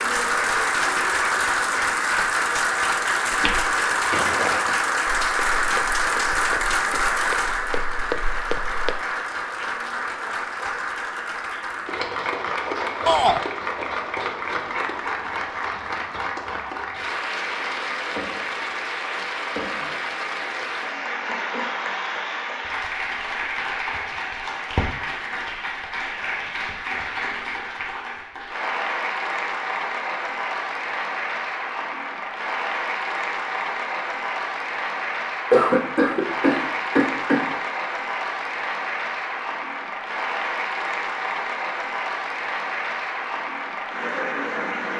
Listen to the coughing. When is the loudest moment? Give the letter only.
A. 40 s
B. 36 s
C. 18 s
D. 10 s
B.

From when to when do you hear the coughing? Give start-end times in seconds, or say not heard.
35.5-37.5.